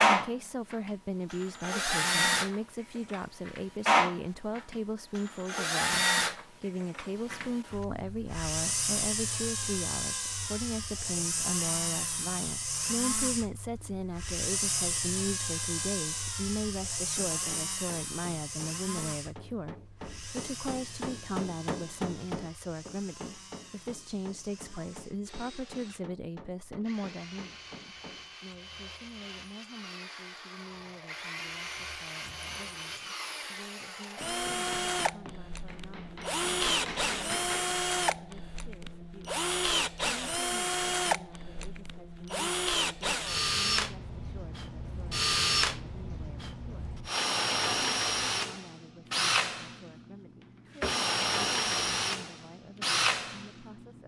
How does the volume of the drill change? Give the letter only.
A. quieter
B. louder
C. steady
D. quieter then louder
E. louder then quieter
D.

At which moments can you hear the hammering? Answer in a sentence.
The hammering can be heard from 17.3 to 28.4 s and from 34.0 to 37.6 s.